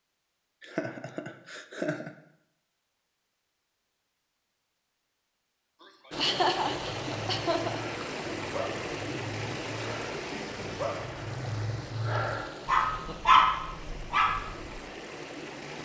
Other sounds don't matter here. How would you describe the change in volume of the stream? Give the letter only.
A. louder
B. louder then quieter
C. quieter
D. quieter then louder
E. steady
C.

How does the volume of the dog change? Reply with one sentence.
The loudness of the dog goes up.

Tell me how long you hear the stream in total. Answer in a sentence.
You can hear the stream for 10 seconds altogether.